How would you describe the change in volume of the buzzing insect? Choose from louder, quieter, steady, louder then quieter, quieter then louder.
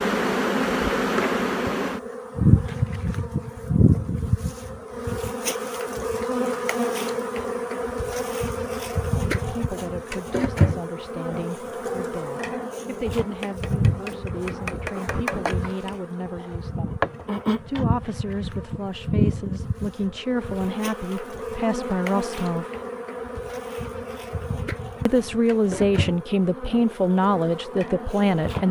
quieter.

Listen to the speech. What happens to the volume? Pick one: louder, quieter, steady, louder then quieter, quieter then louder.
louder.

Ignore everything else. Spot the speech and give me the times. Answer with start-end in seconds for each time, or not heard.
9.2-17.0, 17.6-22.7, 25.1-28.6.